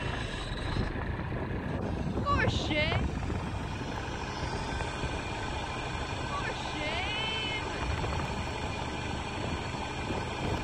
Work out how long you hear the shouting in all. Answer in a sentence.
You can hear the shouting for 2 seconds altogether.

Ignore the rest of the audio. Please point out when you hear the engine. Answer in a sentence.
The engine can be heard from 0.0 to 10.6 s.